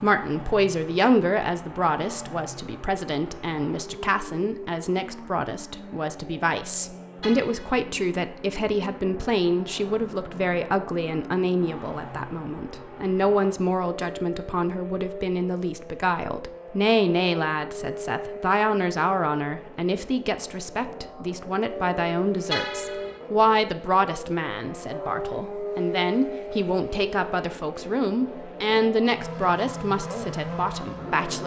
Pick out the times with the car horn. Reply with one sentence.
You can hear the car horn from 7.2 to 7.8 s and from 22.5 to 23.2 s.